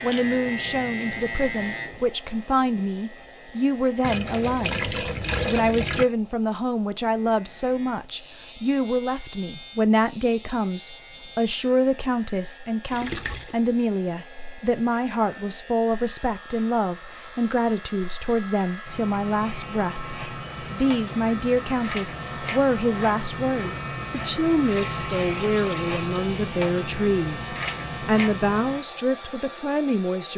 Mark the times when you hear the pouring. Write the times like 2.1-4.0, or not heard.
4.0-6.0, 12.9-13.6, 24.6-25.9.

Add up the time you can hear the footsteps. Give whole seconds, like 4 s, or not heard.
not heard.